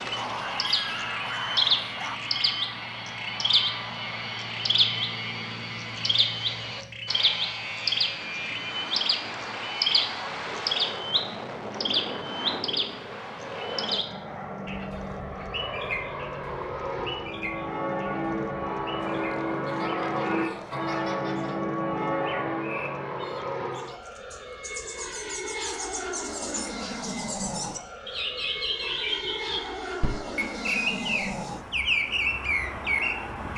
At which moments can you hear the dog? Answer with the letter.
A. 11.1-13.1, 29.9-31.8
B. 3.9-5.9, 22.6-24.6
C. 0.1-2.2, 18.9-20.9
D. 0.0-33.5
C.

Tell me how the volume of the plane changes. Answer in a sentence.
The volume of the plane stays about the same.